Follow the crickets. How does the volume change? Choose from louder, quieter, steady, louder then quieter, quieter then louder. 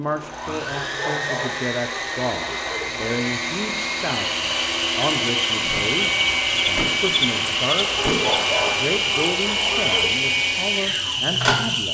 steady.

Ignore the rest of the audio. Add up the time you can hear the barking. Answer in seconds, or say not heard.
5 s.